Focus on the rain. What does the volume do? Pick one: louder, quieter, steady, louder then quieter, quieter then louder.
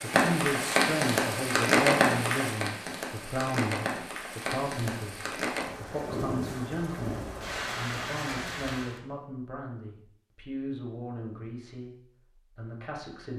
quieter.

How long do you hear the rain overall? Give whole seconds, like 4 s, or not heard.
9 s.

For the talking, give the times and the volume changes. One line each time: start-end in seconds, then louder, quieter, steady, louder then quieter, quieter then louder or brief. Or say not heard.
0.0-13.3 quieter.